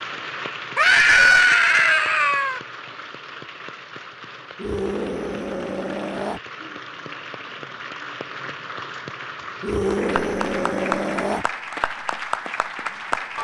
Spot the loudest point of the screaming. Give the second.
1 s.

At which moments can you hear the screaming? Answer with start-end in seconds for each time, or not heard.
0.8-2.6, 4.5-6.4, 9.6-11.4.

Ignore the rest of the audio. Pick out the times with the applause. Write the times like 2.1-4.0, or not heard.
0.0-13.3.